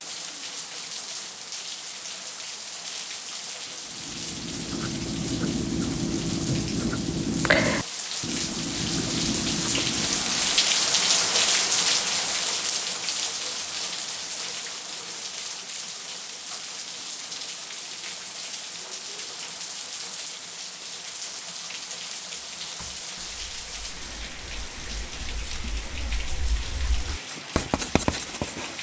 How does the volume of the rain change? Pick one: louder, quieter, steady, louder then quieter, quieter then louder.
louder then quieter.